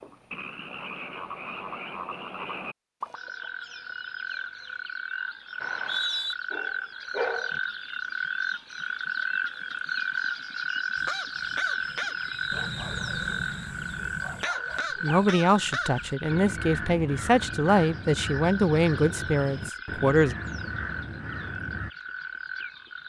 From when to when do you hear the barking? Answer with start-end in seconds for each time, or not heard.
6.5-7.6, 12.5-15.2.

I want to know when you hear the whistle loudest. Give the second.
6 s.